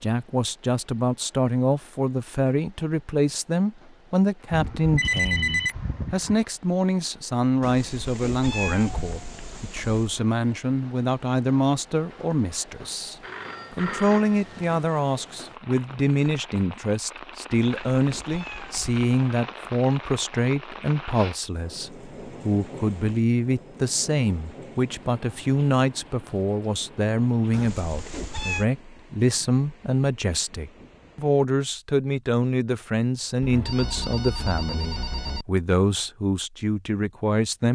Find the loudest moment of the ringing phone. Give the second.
5 s.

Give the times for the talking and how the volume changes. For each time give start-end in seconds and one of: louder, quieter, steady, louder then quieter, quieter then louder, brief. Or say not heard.
0.0-37.7 steady.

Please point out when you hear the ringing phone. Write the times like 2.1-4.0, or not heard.
4.5-6.4, 13.2-14.8, 33.4-35.5.